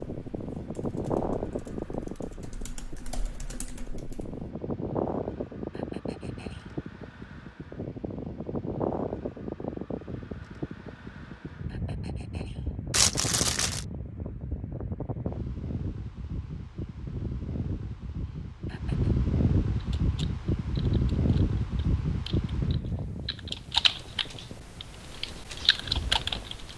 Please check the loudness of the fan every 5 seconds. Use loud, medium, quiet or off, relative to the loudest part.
loud, loud, medium, loud, loud, quiet.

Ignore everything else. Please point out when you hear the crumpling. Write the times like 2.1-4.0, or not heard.
12.9-13.8.